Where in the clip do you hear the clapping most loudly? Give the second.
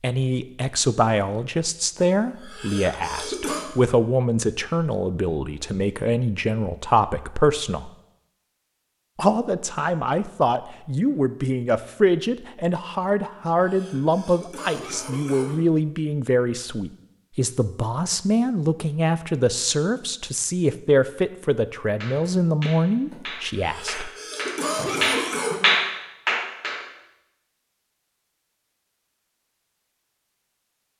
26 s.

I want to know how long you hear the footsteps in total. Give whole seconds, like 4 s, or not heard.
not heard.